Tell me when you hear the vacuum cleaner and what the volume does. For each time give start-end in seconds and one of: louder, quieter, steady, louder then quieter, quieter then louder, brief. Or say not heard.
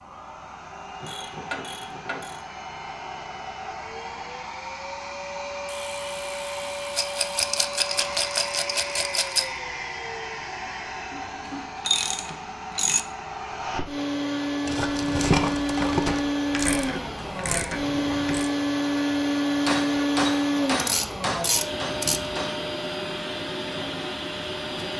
0.0-24.9 louder.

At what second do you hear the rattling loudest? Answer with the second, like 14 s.
15 s.